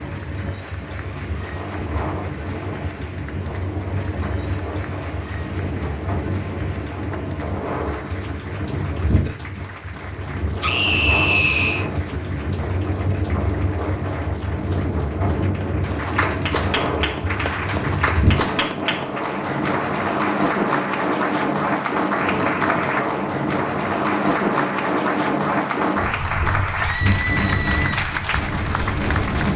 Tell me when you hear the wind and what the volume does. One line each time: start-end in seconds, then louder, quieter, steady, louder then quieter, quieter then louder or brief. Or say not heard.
0.0-29.5 louder.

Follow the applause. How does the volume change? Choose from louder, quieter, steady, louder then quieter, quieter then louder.
louder.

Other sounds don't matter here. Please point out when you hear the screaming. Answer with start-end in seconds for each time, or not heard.
10.6-11.8, 26.8-27.8.